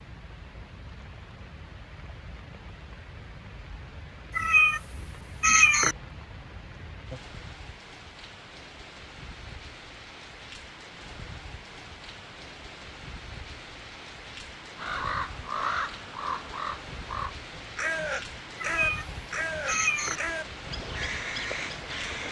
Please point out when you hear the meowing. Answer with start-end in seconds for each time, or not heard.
4.3-6.0, 18.6-20.2.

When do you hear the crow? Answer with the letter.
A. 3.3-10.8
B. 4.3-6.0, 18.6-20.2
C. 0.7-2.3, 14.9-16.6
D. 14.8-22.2
D.